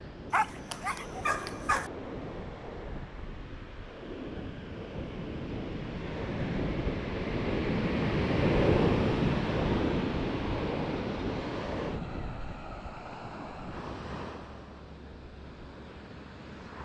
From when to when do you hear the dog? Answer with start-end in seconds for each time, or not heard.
0.3-1.9.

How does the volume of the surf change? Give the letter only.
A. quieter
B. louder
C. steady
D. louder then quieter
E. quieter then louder
D.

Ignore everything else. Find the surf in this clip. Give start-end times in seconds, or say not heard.
0.0-16.8.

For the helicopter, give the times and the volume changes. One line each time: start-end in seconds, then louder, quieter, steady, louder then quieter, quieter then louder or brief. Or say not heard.
not heard.